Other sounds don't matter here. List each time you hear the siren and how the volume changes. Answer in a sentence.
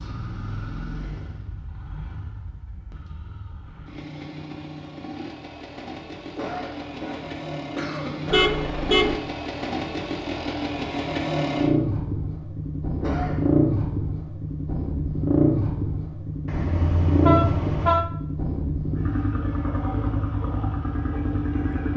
You can't hear the siren here.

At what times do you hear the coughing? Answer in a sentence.
You can hear the coughing from 6.3 to 8.6 s and from 13.0 to 13.6 s.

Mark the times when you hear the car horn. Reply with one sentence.
The car horn can be heard from 8.3 to 9.2 s and from 16.4 to 18.1 s.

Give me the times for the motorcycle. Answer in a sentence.
You can hear the motorcycle from 0.0 to 21.9 s.